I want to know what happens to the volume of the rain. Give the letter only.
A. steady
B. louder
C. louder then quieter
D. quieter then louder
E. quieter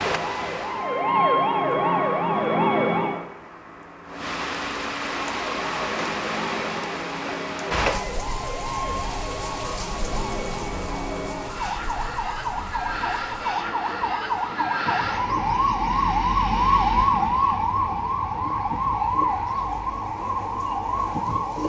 C.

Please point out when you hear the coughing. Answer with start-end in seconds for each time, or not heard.
not heard.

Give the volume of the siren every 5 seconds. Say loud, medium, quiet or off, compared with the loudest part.
loud, medium, medium, loud, medium.